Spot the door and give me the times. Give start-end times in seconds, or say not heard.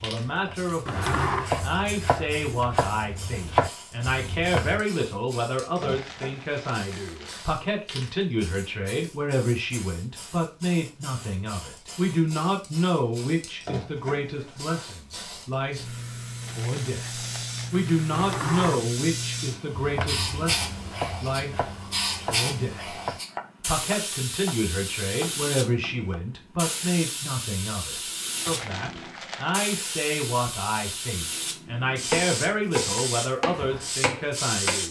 0.8-1.5, 18.1-18.8.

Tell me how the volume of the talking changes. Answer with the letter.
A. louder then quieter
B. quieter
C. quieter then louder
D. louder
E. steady
E.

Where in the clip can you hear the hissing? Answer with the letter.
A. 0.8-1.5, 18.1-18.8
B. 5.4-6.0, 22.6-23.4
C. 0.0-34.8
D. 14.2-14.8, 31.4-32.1
C.